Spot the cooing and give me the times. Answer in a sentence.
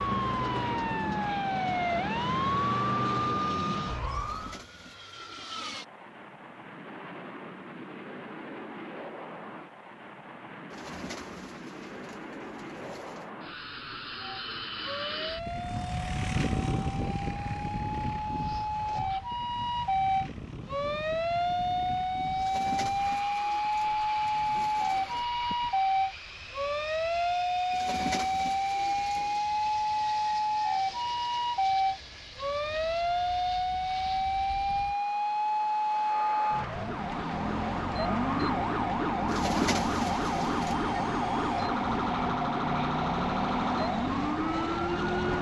You can hear the cooing from 4.1 to 5.5 s, from 10.7 to 13.3 s, from 22.4 to 25.2 s, from 27.7 to 29.4 s and from 39.2 to 40.8 s.